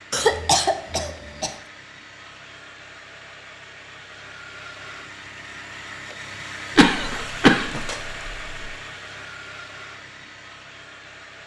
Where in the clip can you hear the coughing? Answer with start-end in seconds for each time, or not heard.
0.1-1.5, 6.8-8.7.